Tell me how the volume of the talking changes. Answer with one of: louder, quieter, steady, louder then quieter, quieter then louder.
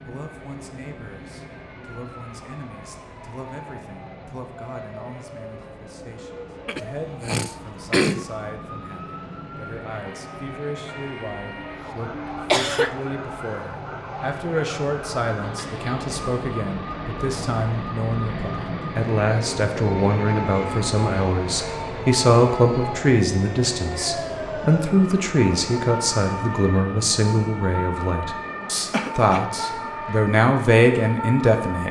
louder.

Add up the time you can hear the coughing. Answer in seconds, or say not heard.
4 s.